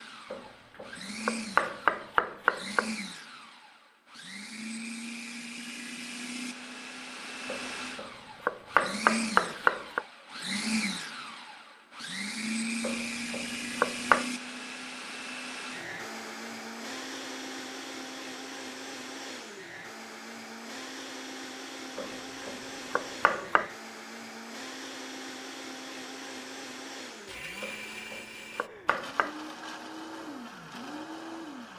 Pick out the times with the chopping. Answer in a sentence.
You can hear the chopping from 0.3 to 2.9 s, from 7.5 to 10.0 s, from 12.8 to 14.2 s, from 21.9 to 23.7 s and from 27.6 to 29.3 s.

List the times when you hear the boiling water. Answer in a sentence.
The boiling water can't be heard in this clip.